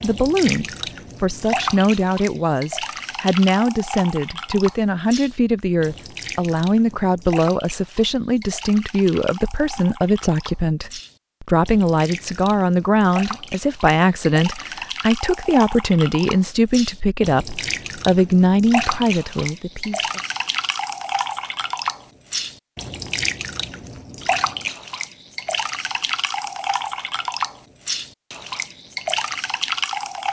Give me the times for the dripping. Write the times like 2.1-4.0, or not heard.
0.0-30.2.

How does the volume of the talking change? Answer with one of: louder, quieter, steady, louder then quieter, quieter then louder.
steady.